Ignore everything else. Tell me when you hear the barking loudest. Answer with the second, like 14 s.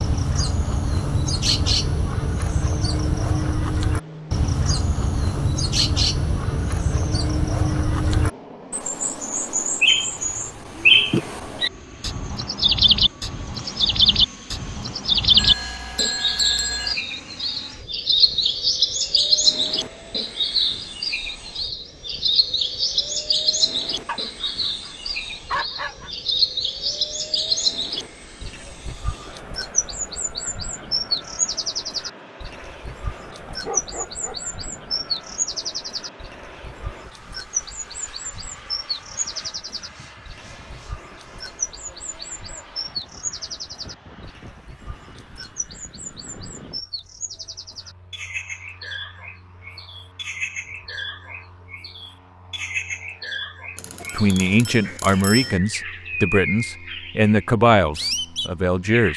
26 s.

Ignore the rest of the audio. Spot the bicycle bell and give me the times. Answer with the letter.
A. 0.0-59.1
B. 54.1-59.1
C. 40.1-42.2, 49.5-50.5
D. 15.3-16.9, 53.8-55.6
D.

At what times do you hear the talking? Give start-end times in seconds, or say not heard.
54.1-59.1.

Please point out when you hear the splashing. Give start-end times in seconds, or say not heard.
not heard.